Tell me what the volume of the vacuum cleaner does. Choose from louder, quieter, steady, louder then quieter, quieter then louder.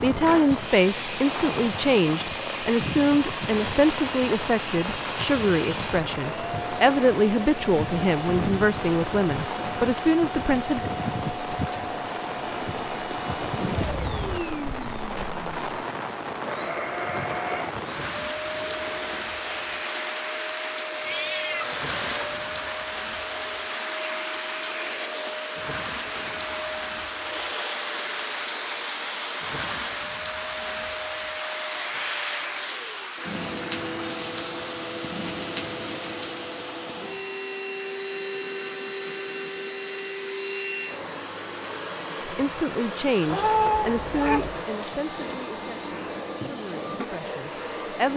steady.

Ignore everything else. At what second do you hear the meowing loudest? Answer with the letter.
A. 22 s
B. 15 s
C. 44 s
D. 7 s
C.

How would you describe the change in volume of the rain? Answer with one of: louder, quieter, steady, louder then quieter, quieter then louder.
steady.